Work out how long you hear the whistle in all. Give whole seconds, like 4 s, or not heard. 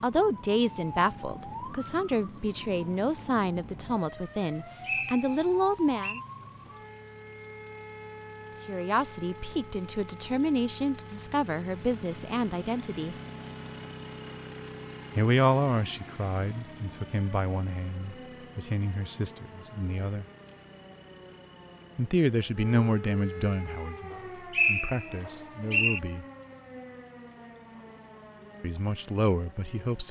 3 s.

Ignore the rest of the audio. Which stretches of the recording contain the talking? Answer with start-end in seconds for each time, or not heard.
0.0-6.2, 8.7-13.2, 15.2-20.2, 21.9-26.2, 28.6-30.0.